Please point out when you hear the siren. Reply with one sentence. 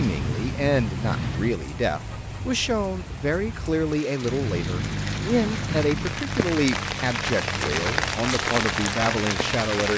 You can't hear the siren here.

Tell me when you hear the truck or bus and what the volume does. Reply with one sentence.
You can hear the truck or bus briefly from 0.0 to 1.6 s; and from 4.2 to 9.9 s, getting quieter.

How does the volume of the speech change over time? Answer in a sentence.
The volume of the speech stays about the same.